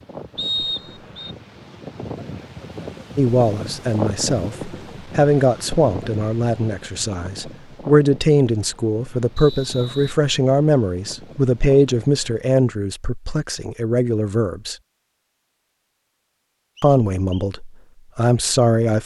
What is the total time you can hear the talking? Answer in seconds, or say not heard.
14 s.